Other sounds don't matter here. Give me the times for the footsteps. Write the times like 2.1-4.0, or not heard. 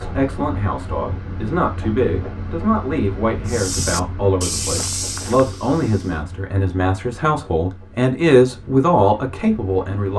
3.5-6.2.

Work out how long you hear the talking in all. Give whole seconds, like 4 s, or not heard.
10 s.